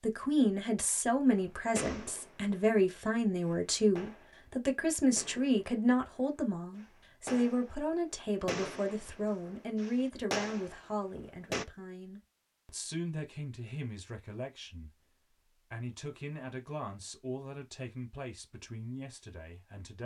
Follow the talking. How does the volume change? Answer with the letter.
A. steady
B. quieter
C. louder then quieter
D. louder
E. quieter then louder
B.